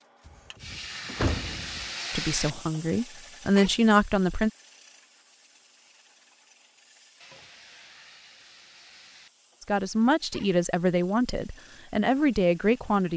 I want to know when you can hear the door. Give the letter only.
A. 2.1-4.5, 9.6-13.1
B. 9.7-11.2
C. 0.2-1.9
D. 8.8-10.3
C.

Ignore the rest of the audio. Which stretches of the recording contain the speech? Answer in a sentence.
The speech can be heard from 2.1 to 4.5 s and from 9.6 to 13.1 s.